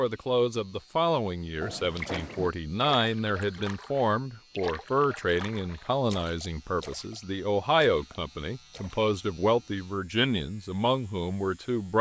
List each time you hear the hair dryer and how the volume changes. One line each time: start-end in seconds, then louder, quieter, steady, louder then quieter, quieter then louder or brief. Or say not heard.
not heard.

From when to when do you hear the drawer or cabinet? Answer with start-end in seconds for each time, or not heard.
1.6-2.5.